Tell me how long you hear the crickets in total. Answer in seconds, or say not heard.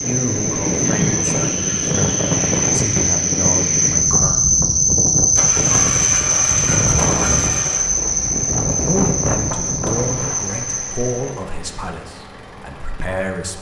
11 s.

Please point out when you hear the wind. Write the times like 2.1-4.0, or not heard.
0.0-10.4.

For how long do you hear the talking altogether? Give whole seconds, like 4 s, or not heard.
9 s.